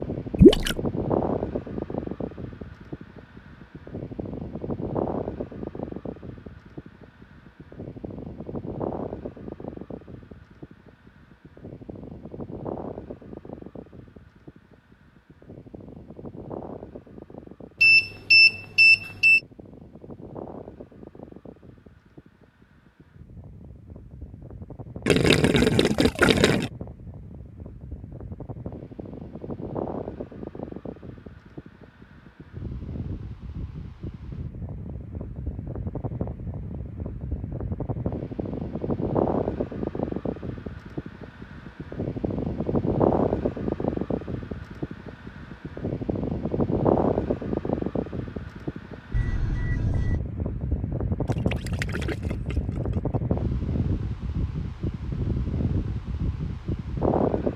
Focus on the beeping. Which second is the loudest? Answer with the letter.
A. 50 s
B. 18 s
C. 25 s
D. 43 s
B.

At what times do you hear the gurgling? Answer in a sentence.
You can hear the gurgling from 0.4 to 0.8 s, from 25.1 to 26.7 s and from 51.2 to 53.1 s.